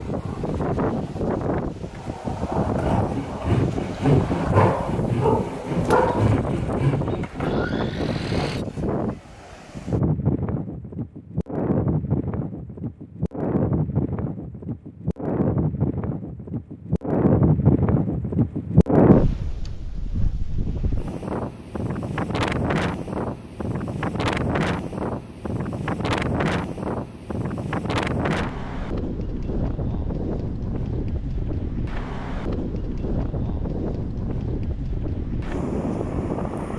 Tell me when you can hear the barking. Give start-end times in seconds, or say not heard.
4.5-6.3.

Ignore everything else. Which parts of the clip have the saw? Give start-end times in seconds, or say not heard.
2.8-8.7.